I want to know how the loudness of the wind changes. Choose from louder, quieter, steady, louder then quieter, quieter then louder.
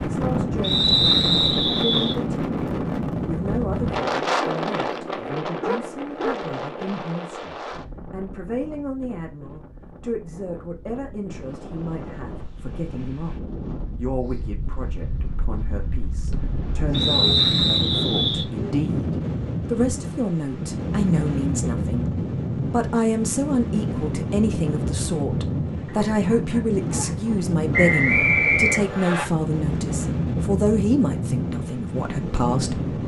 quieter then louder.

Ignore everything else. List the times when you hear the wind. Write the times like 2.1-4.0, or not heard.
0.0-33.0.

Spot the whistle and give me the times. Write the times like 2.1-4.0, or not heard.
0.6-2.1, 16.9-18.4, 27.7-29.2.